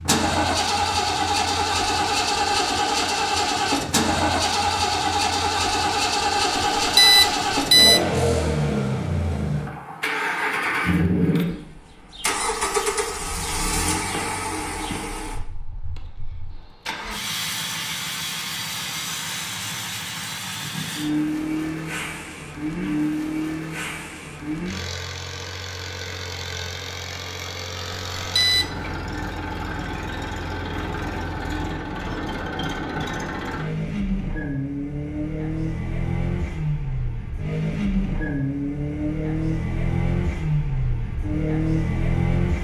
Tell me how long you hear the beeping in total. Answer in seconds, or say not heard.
2 s.